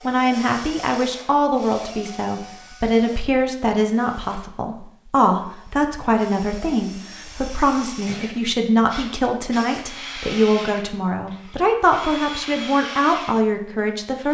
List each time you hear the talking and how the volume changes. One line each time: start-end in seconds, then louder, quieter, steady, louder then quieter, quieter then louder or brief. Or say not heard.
0.0-14.2 steady.